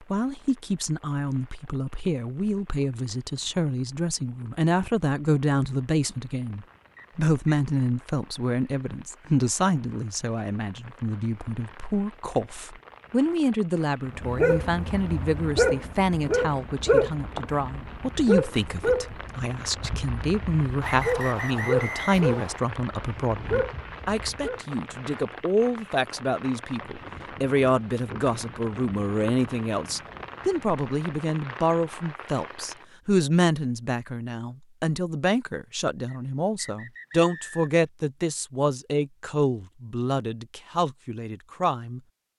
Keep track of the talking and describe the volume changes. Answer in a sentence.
The volume of the talking stays about the same.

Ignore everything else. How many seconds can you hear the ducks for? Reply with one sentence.
The ducks can't be heard in this clip.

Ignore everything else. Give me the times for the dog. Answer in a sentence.
The dog can be heard from 14.2 to 24.6 s.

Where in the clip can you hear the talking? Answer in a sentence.
The talking can be heard from 0.0 to 42.0 s.